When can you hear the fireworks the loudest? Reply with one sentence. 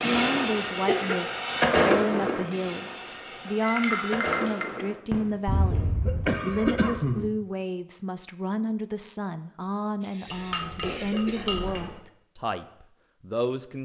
The loudest moment of the fireworks is at 2 seconds.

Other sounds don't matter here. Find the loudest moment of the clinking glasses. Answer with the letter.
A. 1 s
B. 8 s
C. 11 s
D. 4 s
D.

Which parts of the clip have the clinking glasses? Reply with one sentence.
You can hear the clinking glasses from 3.6 to 4.8 s and from 10.2 to 12.0 s.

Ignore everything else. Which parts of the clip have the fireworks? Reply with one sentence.
You can hear the fireworks from 0.0 to 5.9 s.